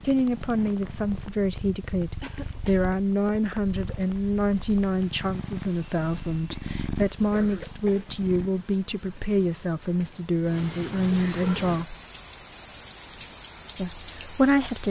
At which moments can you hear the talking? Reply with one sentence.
The talking can be heard from 0.0 to 11.9 s and from 13.8 to 14.8 s.